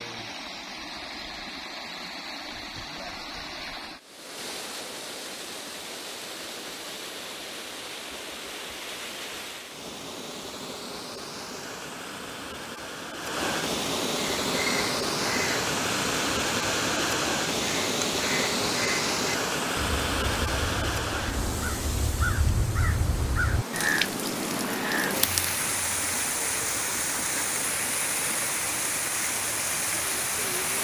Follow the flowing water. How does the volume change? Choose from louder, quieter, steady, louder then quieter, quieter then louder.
louder.